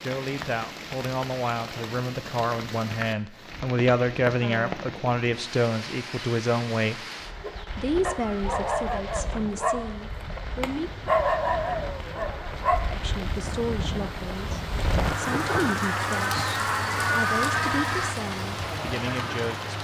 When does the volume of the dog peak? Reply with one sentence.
The volume of the dog peaks at 11 seconds.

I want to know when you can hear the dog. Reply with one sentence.
You can hear the dog from 7.4 to 12.8 s.